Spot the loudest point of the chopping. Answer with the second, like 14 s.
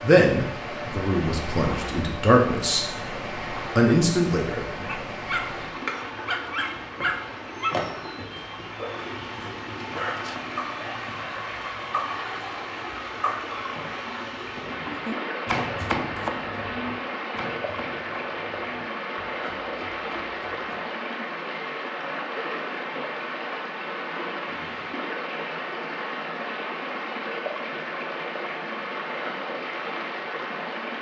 16 s.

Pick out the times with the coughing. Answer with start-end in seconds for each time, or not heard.
not heard.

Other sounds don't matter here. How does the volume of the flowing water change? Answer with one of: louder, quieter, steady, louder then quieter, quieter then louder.
steady.